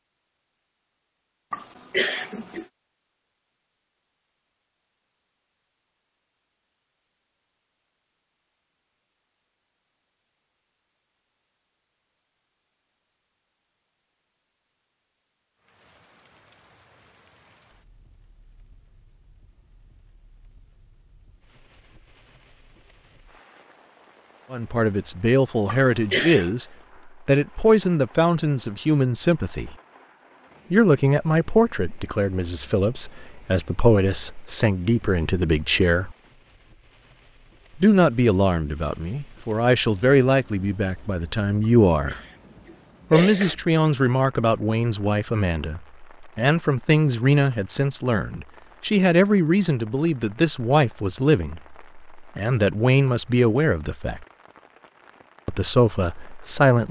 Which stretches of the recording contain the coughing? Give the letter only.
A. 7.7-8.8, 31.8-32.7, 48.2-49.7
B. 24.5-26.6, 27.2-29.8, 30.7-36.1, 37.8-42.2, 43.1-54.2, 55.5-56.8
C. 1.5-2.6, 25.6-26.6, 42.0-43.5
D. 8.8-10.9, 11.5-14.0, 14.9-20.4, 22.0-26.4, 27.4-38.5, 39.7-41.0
C.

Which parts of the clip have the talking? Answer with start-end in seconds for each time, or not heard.
24.5-26.6, 27.2-29.8, 30.7-36.1, 37.8-42.2, 43.1-54.2, 55.5-56.8.